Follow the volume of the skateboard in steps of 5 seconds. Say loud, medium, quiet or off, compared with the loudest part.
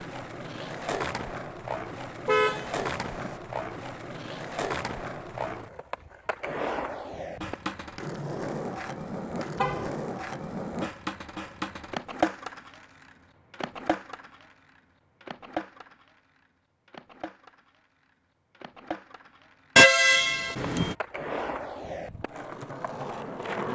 loud, loud, loud, medium, loud.